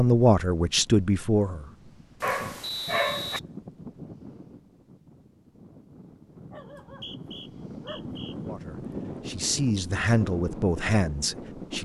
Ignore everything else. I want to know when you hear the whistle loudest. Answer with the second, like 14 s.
3 s.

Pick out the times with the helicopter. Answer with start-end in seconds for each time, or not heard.
not heard.